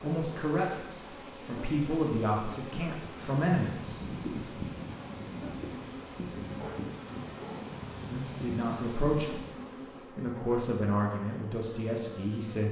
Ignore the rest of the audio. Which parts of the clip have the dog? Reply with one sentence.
The dog can be heard from 6.5 to 7.8 s.